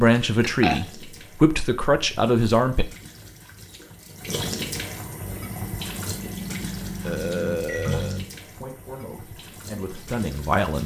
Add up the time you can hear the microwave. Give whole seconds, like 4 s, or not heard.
3 s.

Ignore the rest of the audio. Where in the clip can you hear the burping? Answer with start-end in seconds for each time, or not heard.
0.4-0.8, 7.0-8.2.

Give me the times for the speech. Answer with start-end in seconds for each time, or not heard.
0.0-2.9, 8.4-10.8.